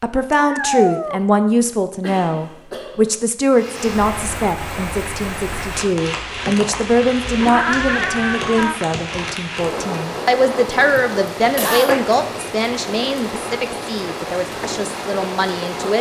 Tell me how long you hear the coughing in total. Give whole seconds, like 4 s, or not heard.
2 s.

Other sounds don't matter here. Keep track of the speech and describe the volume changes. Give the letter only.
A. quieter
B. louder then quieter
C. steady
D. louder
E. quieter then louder
A.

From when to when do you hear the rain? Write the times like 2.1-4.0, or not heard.
3.5-15.9.